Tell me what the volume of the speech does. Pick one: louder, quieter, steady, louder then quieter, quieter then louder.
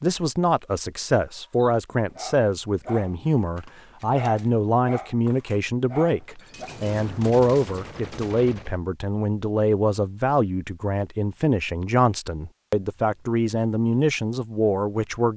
steady.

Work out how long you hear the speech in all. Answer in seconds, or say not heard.
15 s.